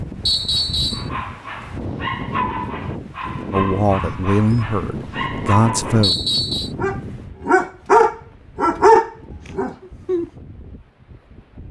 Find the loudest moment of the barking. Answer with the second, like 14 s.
9 s.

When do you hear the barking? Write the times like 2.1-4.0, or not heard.
0.9-6.1, 6.8-10.2.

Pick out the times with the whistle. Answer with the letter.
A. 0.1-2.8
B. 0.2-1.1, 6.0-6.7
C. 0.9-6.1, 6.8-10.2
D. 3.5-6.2
B.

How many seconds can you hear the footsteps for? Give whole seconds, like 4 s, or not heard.
not heard.